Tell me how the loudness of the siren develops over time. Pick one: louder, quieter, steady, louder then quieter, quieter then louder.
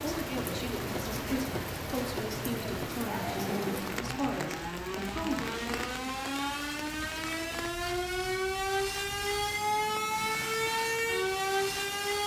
louder.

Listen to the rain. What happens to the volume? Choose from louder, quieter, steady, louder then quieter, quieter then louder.
quieter.